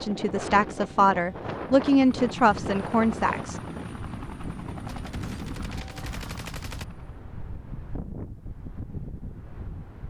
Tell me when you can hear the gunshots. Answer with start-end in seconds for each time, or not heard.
4.8-6.8.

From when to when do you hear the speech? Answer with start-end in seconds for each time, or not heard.
0.0-3.6.